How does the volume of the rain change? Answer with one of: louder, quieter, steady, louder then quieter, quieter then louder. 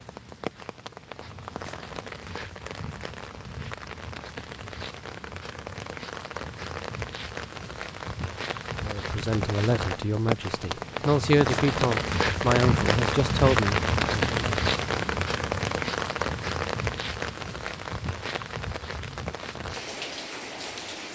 louder then quieter.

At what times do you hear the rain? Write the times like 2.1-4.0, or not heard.
0.0-21.0.